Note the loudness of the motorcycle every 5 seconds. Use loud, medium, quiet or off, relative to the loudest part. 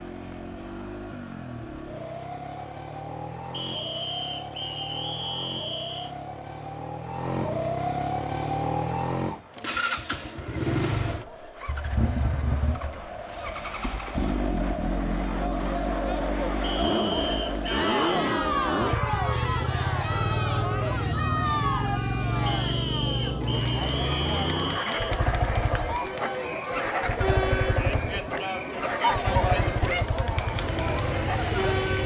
medium, loud, loud, loud, loud, loud, loud.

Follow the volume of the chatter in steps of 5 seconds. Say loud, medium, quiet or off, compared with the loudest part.
quiet, quiet, medium, loud, loud, loud, loud.